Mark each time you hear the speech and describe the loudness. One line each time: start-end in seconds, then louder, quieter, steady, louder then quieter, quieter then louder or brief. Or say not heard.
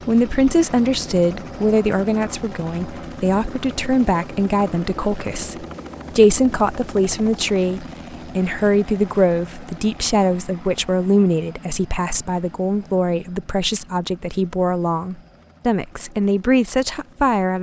0.1-17.5 steady.